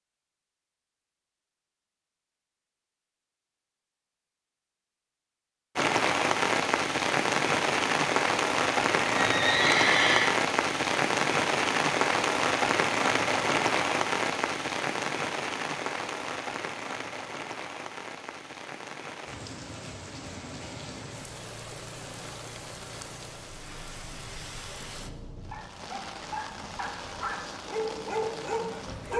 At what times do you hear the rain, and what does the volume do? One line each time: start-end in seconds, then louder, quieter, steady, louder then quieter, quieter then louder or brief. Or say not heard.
5.8-29.1 quieter.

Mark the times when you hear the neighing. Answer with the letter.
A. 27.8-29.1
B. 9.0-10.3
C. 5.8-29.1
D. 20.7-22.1
B.